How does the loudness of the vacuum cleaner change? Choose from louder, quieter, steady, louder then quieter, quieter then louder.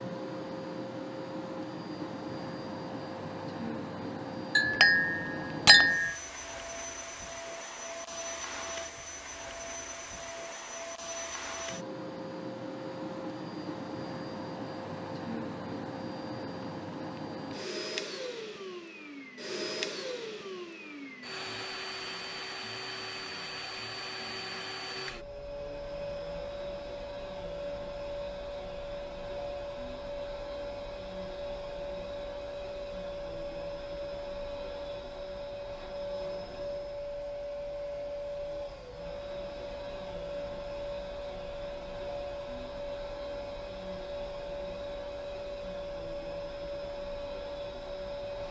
steady.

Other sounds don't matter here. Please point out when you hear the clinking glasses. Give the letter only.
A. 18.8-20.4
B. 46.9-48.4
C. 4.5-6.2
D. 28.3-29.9
C.